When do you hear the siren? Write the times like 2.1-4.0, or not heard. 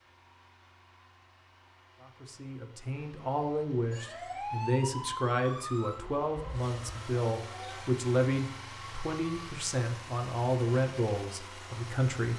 3.9-9.6.